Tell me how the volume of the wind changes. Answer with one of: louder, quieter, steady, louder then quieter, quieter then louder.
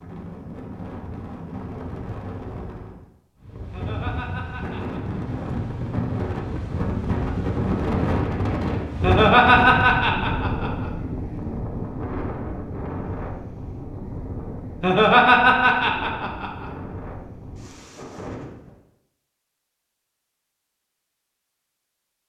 louder then quieter.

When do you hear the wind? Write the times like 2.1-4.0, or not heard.
0.0-18.8.